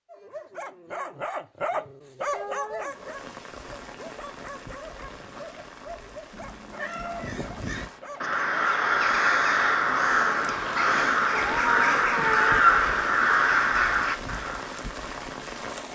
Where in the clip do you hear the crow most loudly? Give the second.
13 s.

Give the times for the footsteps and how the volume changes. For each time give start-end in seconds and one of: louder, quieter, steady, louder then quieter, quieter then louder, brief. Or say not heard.
not heard.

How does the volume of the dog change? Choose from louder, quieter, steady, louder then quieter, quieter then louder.
quieter.